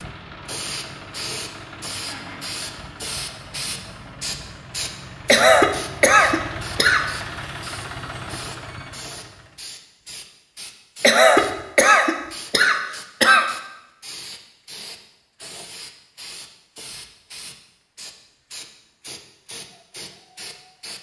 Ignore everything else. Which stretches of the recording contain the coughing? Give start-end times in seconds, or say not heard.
5.2-7.0, 11.0-13.4.